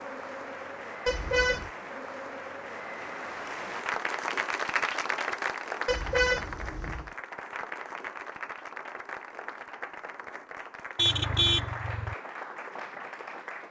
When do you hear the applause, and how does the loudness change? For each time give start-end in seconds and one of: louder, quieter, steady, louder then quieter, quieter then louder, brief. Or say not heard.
0.0-13.6 louder then quieter.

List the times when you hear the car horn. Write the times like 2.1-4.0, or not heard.
1.1-1.7, 5.8-7.1, 10.9-12.2.